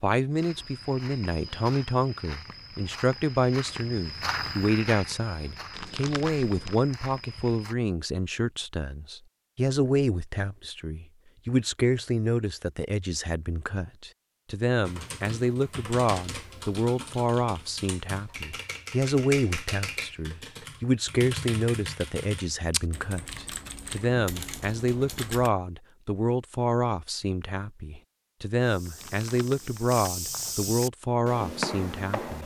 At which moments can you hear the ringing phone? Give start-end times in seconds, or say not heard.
not heard.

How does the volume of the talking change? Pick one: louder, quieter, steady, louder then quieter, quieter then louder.
steady.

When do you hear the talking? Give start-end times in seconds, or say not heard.
0.0-32.4.